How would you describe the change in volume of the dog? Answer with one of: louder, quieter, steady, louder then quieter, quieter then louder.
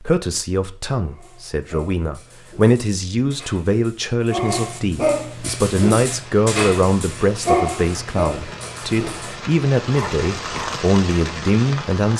louder then quieter.